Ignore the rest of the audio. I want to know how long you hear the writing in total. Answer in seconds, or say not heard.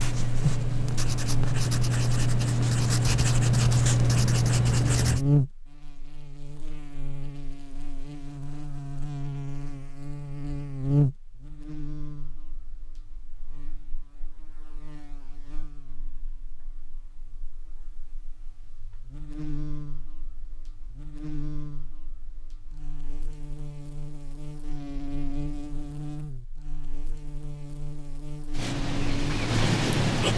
7 s.